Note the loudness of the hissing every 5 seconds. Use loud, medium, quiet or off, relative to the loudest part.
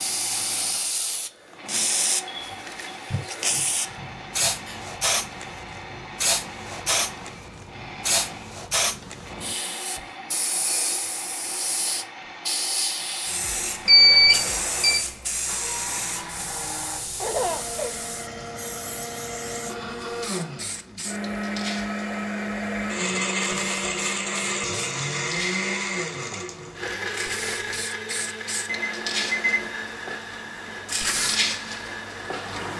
loud, loud, loud, medium, medium, medium, loud.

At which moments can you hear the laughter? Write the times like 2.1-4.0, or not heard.
3.1-4.8, 17.2-17.9.